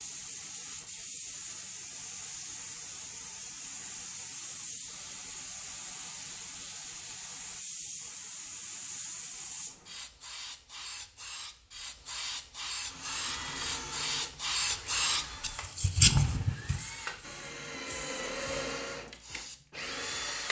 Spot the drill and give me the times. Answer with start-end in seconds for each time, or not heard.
12.8-20.4.